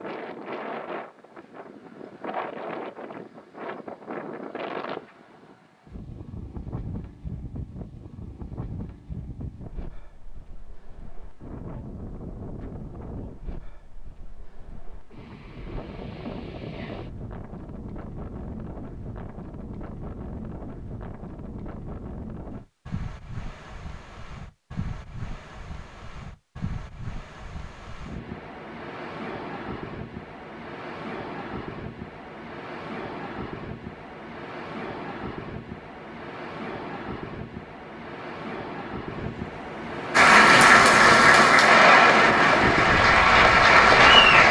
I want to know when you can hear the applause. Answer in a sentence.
You can hear the applause from 40.1 to 44.4 s.